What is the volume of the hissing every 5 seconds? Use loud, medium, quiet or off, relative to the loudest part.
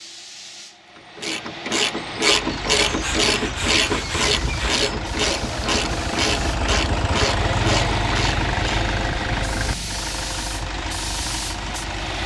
medium, loud, loud.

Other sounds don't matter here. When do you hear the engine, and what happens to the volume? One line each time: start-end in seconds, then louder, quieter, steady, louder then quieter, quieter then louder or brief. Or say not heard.
2.2-12.2 louder then quieter.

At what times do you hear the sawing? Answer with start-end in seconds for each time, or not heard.
2.8-4.9.